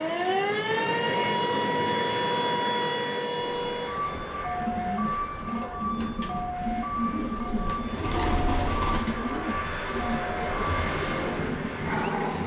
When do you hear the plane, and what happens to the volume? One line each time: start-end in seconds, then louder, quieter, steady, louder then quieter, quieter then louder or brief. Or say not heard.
0.0-12.4 quieter then louder.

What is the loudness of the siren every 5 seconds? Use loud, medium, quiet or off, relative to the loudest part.
loud, medium, medium.